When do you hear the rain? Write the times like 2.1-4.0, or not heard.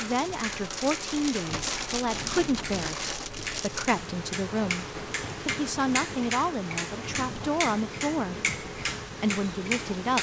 0.0-10.1.